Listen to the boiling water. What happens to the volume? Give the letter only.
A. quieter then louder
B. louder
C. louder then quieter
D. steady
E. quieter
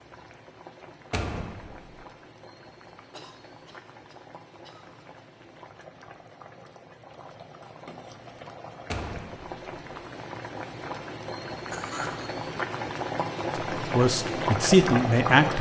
B.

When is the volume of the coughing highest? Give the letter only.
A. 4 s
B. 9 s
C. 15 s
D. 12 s
D.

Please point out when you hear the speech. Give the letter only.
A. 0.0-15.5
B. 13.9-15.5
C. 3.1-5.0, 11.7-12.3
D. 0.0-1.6
B.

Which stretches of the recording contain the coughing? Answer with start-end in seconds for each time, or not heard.
3.1-5.0, 11.7-12.3.